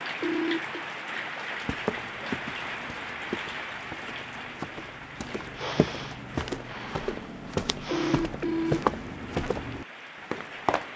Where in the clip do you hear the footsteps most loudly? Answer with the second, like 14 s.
9 s.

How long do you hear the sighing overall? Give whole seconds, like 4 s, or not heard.
3 s.